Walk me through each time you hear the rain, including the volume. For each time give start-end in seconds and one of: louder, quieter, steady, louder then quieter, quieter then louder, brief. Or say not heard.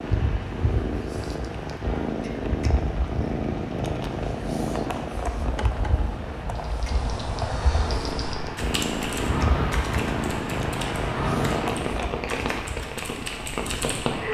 0.0-14.3 louder.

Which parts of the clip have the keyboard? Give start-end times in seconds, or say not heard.
6.5-14.2.